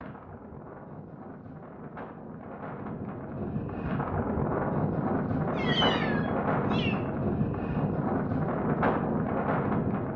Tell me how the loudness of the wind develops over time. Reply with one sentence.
The loudness of the wind goes up.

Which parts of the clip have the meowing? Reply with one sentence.
You can hear the meowing from 5.5 to 7.0 s.